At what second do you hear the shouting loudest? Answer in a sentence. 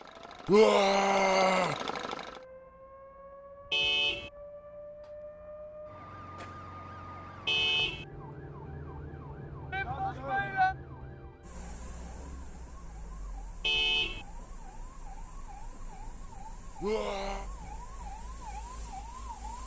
The volume of the shouting peaks at 1 second.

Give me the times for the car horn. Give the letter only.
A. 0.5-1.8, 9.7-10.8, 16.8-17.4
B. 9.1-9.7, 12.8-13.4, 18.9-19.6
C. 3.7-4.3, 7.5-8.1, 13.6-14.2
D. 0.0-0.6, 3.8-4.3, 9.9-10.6
C.